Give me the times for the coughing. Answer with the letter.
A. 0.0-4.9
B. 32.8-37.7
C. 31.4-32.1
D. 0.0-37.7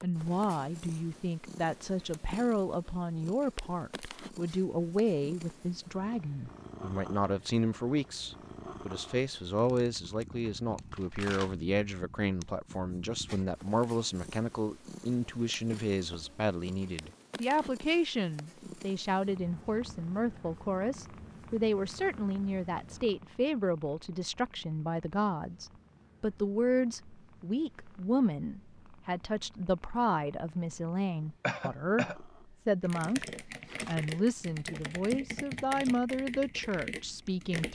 C.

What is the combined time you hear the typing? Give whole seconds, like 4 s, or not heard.
5 s.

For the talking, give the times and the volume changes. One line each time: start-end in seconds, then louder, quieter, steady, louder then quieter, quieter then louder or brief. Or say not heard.
0.0-37.7 steady.